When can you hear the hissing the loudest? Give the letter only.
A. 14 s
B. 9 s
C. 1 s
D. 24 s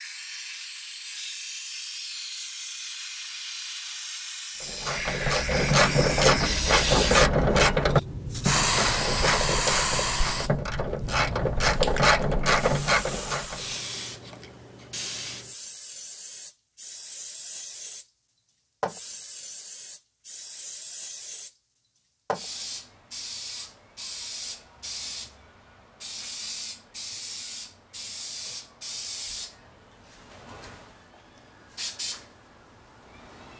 B.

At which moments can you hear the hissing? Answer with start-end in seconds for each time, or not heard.
0.0-33.5.